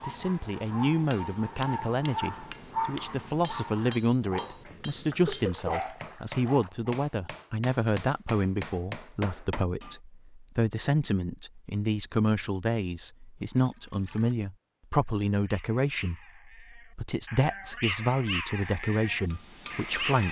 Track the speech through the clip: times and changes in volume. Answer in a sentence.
The speech can be heard from 0.0 to 20.2 s, at a steady volume.